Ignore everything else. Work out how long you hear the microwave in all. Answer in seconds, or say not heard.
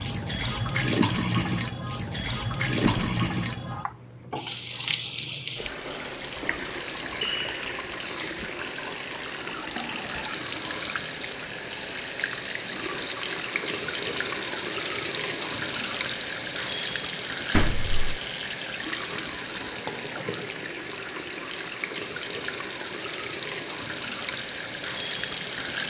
not heard.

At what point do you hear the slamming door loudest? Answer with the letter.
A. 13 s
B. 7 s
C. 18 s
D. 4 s
C.